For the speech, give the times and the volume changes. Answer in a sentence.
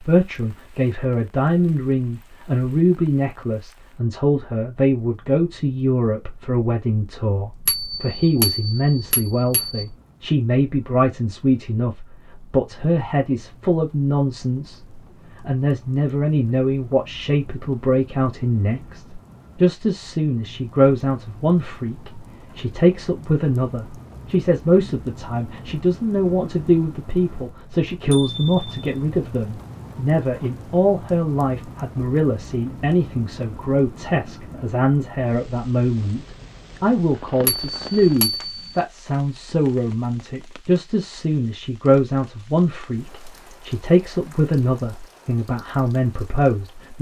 The speech can be heard from 0.1 to 46.9 s, at a steady volume.